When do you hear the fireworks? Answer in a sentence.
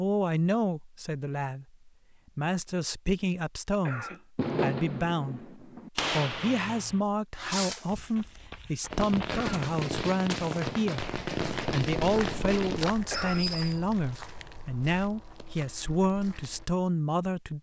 You can hear the fireworks from 4.3 to 13.8 s.